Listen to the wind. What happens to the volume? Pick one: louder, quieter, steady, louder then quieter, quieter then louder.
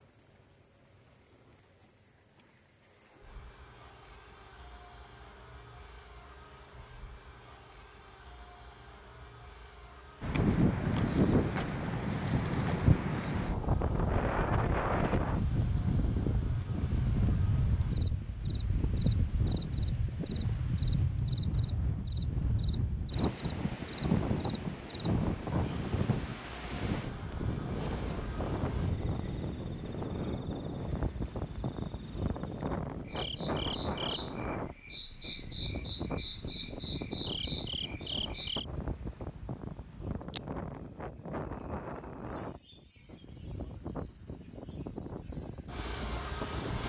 quieter.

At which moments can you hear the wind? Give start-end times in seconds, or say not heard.
10.2-46.8.